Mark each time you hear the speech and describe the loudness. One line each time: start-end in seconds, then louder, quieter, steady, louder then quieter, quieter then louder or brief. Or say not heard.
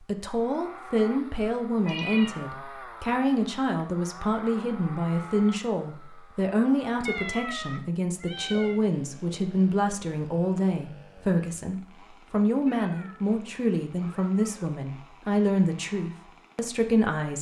0.0-17.3 steady.